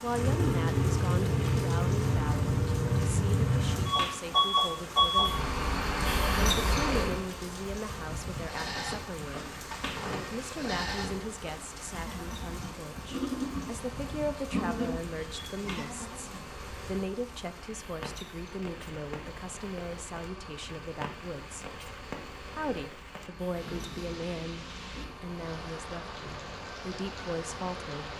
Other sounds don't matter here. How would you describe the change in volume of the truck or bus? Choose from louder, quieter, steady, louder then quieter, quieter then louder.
quieter.